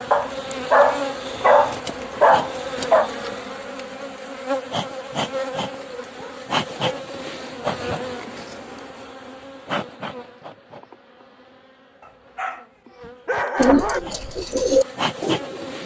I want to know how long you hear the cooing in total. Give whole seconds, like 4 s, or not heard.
2 s.